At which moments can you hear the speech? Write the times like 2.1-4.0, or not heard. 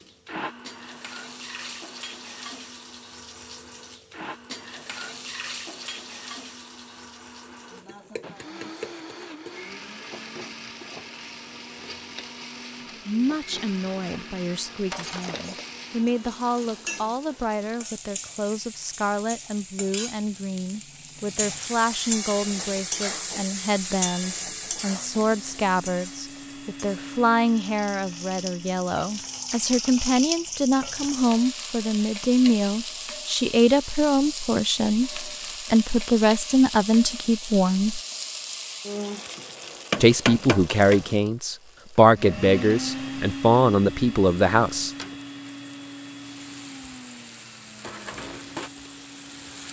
13.1-38.0, 40.0-44.9.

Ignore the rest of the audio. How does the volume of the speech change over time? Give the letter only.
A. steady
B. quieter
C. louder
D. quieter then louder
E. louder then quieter
C.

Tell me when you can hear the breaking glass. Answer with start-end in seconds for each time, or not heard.
14.9-15.8.